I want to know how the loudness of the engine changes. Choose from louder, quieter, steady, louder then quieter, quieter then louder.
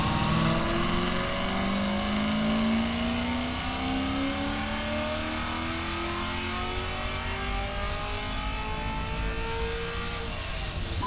quieter.